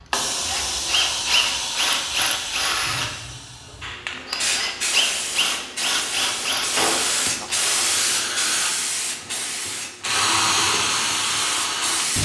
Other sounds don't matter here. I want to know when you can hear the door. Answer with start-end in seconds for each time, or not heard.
6.5-7.5.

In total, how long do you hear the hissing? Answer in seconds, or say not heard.
12 s.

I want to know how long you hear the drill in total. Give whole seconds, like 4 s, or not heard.
12 s.